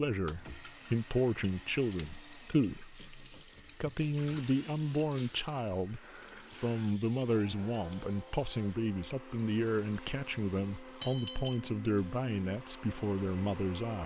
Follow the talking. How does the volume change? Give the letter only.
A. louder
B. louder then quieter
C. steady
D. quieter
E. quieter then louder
C.